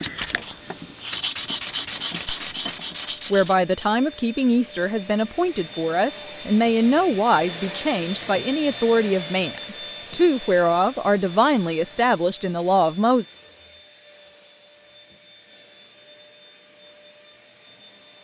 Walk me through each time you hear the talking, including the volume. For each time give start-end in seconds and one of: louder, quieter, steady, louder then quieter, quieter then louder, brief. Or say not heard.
3.3-13.2 steady.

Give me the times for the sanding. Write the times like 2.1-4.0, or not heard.
0.0-3.5.